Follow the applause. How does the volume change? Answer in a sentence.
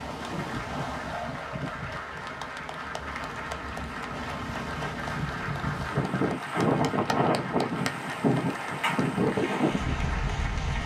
The volume of the applause stays about the same.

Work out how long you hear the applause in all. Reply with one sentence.
The applause can be heard for 11 seconds in total.